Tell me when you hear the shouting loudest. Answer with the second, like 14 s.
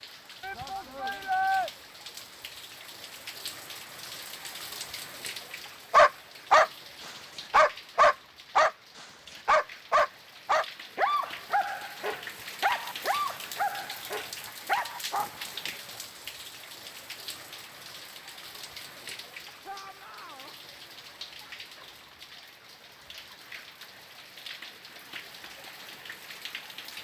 1 s.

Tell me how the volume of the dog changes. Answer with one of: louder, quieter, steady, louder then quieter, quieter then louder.
quieter.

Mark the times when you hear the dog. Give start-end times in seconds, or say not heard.
5.9-15.7.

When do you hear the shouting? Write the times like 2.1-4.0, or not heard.
0.4-1.7, 19.6-20.5.